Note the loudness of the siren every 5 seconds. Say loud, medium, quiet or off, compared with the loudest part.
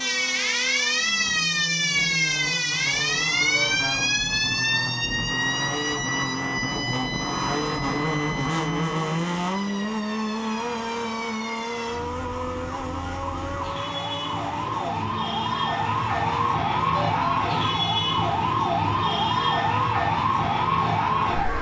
loud, medium, medium, loud, loud.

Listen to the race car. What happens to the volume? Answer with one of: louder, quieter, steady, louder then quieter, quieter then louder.
louder then quieter.